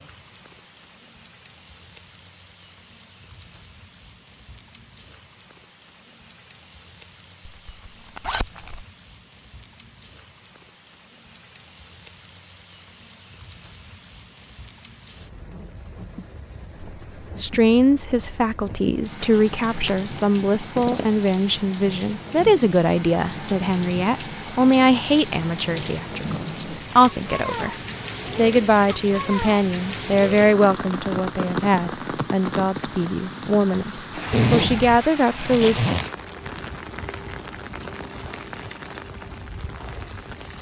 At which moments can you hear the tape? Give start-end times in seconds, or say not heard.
not heard.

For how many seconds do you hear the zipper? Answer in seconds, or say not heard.
5 s.